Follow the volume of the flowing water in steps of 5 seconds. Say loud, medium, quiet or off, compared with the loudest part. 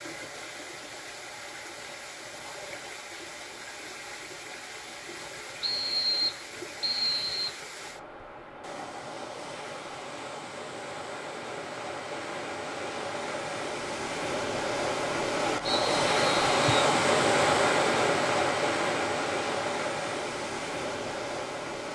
quiet, quiet, medium, loud, medium.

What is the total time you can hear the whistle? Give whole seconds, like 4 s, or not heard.
3 s.